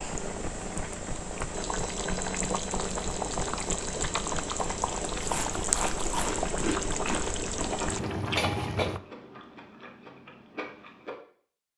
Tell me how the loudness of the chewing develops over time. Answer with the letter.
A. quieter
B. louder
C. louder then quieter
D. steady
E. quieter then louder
A.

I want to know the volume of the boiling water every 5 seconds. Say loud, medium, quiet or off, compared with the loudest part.
loud, loud, off.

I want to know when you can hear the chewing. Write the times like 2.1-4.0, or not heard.
5.1-11.2.